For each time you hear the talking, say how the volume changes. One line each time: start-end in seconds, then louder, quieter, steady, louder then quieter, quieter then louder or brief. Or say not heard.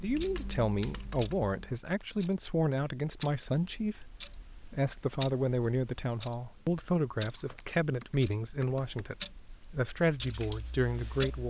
0.0-11.4 steady.